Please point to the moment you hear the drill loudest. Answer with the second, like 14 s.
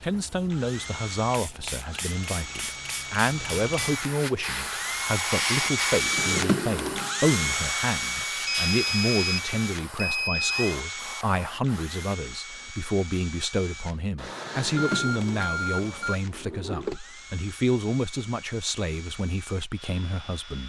6 s.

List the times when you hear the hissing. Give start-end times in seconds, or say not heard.
0.0-12.2.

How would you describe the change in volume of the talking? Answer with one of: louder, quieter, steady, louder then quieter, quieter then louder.
steady.